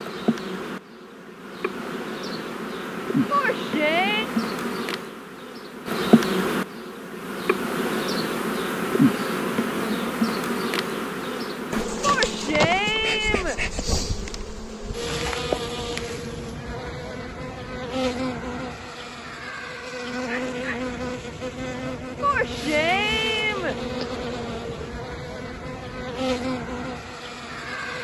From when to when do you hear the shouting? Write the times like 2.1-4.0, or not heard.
3.3-4.2, 12.0-13.6, 22.2-23.8.